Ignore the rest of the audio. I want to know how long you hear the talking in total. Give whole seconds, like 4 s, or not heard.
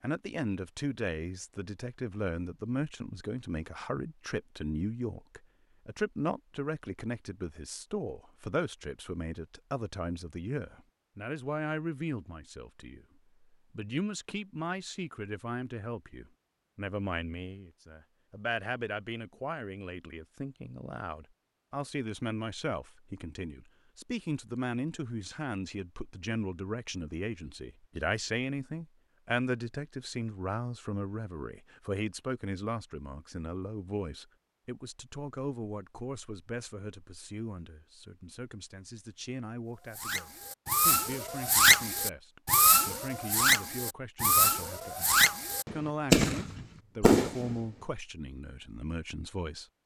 50 s.